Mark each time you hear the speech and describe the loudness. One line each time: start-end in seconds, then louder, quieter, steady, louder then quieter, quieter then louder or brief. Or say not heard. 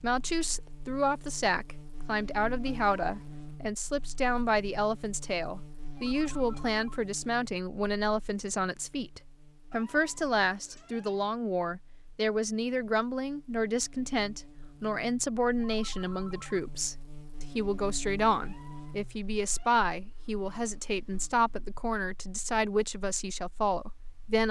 0.0-24.4 steady.